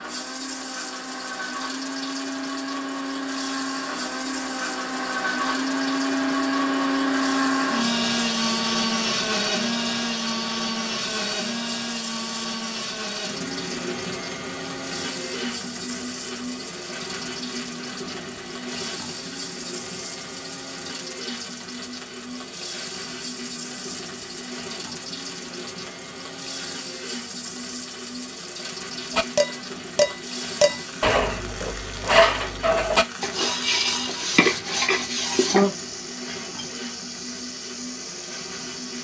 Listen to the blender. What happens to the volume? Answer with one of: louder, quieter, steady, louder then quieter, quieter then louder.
quieter.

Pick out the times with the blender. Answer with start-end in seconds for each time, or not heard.
0.0-38.9.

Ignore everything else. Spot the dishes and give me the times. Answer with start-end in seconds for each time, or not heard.
29.1-35.8.